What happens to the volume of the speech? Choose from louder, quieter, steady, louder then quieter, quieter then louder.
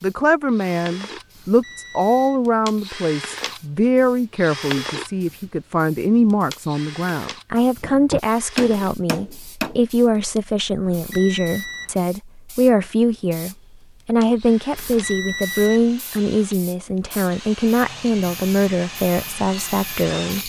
steady.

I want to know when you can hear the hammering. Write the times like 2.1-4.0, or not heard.
7.8-9.8.